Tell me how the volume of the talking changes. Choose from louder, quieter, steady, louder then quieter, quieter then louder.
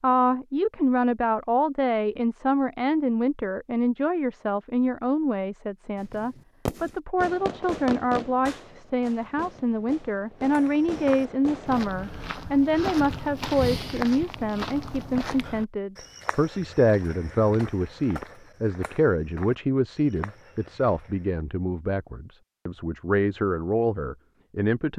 steady.